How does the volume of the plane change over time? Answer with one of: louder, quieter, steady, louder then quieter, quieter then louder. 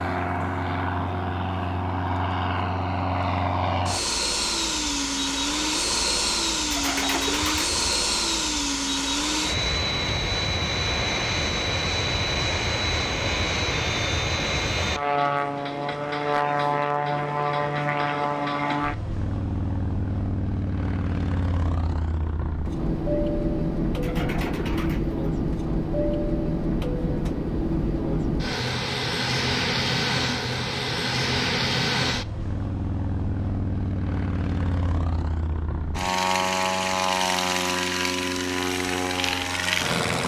steady.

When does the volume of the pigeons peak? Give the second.
7 s.